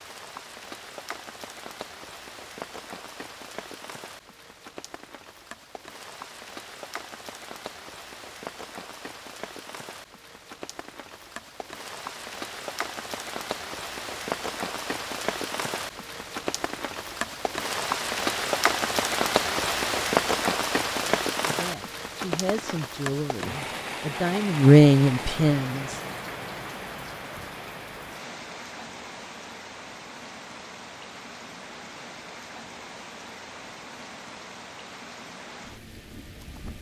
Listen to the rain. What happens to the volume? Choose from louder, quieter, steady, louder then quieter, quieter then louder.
louder then quieter.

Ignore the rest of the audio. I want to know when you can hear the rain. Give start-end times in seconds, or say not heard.
0.0-36.7.